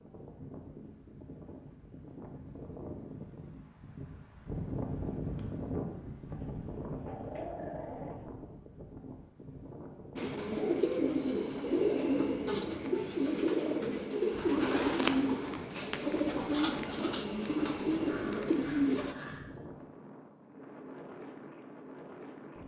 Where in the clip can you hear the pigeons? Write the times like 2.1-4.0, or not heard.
10.2-19.1.